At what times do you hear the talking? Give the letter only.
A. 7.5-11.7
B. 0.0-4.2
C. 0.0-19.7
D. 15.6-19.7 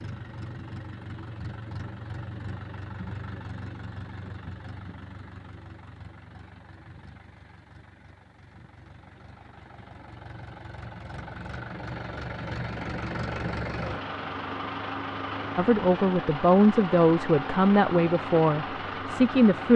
D.